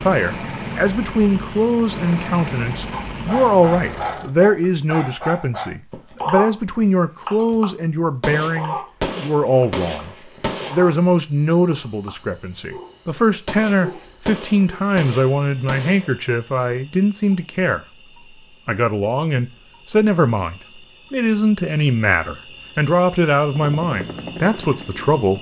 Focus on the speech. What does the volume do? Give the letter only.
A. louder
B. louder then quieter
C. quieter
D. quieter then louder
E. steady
E.